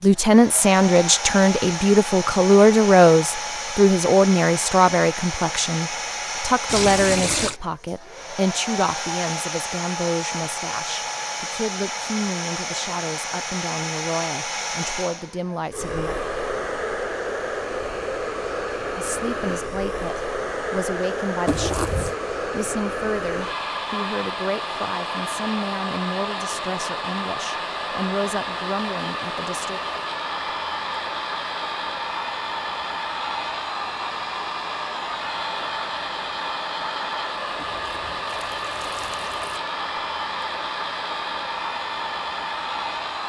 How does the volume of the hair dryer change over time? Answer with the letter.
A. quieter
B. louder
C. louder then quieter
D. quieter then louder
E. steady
E.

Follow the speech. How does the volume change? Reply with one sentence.
The loudness of the speech goes down.